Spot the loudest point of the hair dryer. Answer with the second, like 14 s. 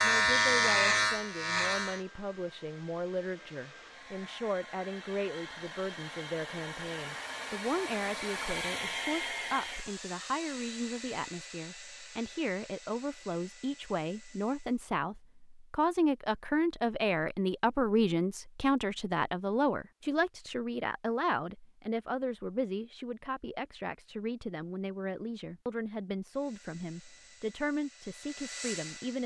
9 s.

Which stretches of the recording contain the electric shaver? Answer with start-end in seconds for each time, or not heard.
0.0-2.0.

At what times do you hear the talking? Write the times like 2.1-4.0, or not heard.
0.0-29.2.